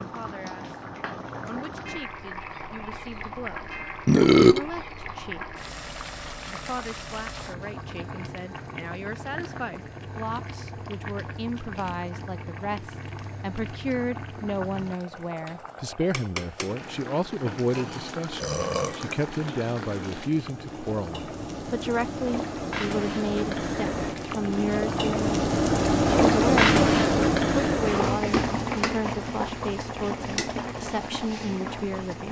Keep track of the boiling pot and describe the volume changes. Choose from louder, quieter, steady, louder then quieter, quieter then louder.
louder.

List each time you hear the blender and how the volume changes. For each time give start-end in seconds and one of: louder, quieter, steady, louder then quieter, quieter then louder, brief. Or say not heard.
not heard.